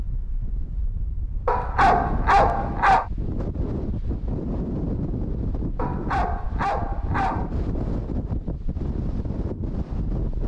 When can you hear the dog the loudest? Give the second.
2 s.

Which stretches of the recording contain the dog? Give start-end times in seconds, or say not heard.
1.4-3.0, 5.8-7.5.